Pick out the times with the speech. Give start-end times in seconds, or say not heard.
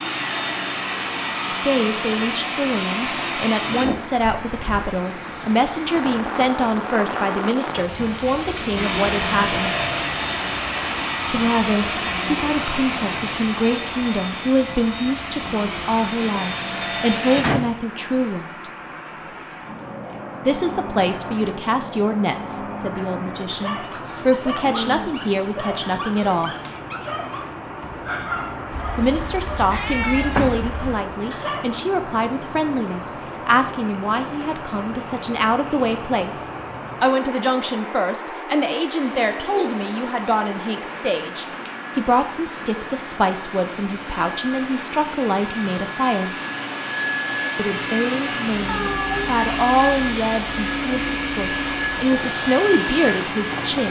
1.5-9.7, 11.3-18.4, 20.4-26.6, 28.9-36.4, 37.0-46.3, 47.5-53.8.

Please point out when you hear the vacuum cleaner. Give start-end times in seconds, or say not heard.
0.0-3.9, 8.8-17.4, 39.0-53.8.